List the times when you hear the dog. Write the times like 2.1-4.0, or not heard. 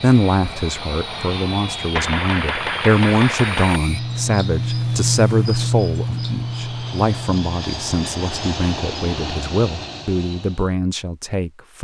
not heard.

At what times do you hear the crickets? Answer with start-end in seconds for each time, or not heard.
0.1-7.5.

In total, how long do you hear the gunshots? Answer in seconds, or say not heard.
2 s.